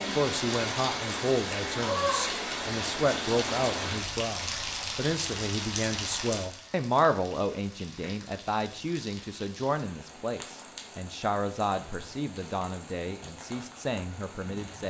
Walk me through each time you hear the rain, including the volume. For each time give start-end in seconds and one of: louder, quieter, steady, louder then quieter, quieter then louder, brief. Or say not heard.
0.0-14.8 quieter.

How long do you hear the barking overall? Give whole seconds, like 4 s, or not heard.
not heard.